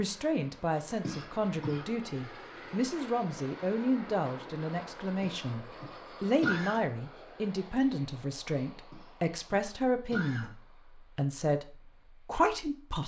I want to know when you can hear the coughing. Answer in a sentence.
The coughing can be heard from 1.0 to 1.9 s, from 5.2 to 6.8 s and from 8.9 to 10.5 s.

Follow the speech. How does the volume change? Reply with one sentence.
The volume of the speech stays about the same.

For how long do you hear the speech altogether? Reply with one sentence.
The speech can be heard for 13 seconds in total.